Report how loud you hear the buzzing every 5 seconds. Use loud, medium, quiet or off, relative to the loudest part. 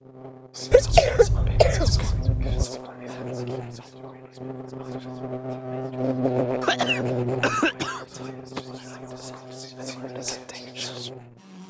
medium, loud, medium.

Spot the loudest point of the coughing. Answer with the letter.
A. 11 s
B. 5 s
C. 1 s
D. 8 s
C.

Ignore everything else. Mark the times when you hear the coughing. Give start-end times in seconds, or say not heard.
0.7-2.6, 6.6-8.6.